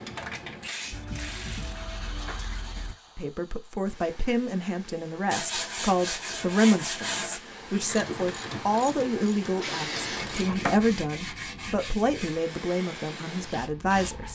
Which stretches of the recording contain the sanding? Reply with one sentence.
You can hear the sanding from 0.9 to 3.0 s, from 5.3 to 7.4 s and from 10.2 to 12.4 s.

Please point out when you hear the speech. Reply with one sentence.
You can hear the speech from 3.1 to 14.3 s.